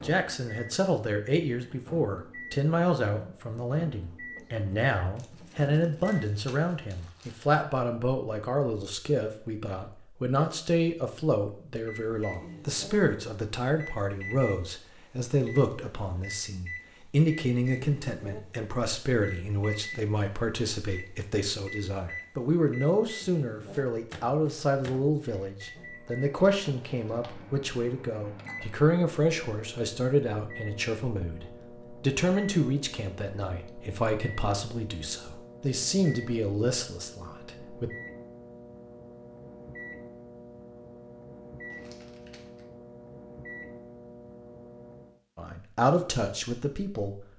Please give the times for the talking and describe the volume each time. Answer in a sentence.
You can hear the talking from 0.0 to 37.9 s, at a steady volume; and briefly from 45.4 to 47.2 s.